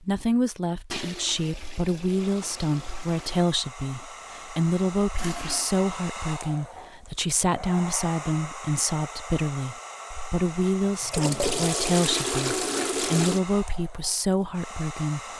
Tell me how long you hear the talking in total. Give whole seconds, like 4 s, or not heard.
15 s.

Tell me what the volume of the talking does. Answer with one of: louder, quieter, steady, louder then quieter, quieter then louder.
steady.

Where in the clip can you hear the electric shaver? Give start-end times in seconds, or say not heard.
not heard.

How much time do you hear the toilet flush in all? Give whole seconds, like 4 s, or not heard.
6 s.